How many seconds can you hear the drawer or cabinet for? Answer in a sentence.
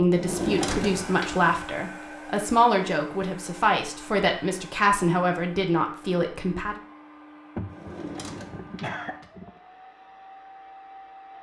The drawer or cabinet can be heard for 3 seconds in total.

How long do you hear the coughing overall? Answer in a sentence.
The coughing can be heard for 2 seconds in total.